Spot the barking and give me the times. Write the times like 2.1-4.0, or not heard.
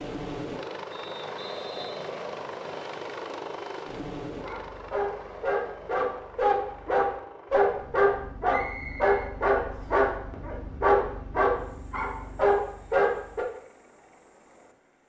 4.3-13.4.